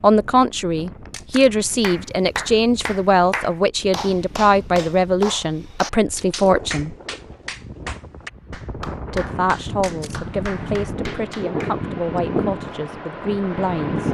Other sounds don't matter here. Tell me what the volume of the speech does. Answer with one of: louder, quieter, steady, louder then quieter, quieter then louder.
quieter.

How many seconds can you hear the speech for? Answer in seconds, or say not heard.
12 s.